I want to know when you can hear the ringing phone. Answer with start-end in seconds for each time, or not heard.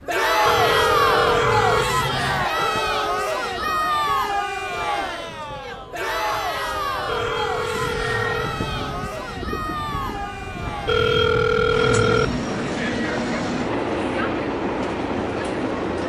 0.5-2.5, 7.0-9.1, 10.8-12.5.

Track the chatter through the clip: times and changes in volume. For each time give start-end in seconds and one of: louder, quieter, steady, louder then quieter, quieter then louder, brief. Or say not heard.
0.1-16.0 quieter.